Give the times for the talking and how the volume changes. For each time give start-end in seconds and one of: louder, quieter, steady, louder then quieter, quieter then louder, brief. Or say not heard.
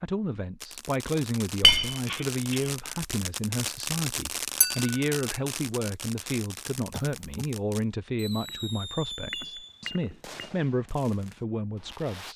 0.0-12.3 steady.